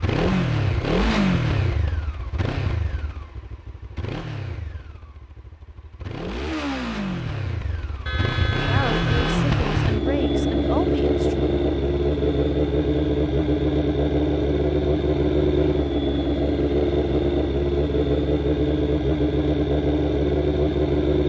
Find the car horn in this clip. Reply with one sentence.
The car horn can be heard from 8.1 to 9.5 s.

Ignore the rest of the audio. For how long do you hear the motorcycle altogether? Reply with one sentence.
The motorcycle can be heard for 21 seconds in total.